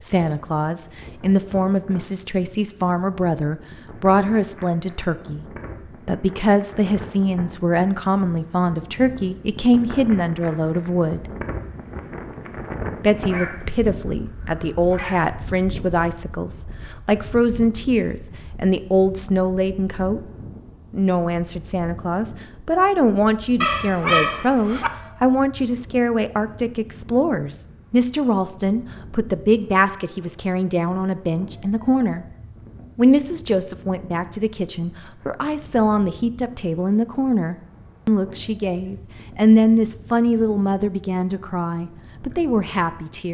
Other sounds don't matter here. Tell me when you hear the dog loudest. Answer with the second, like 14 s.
24 s.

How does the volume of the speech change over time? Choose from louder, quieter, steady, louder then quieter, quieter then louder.
steady.